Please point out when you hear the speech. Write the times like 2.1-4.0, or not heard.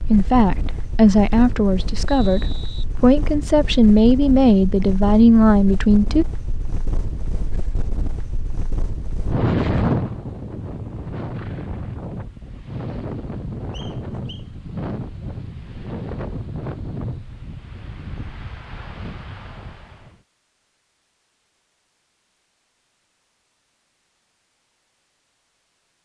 0.1-6.2.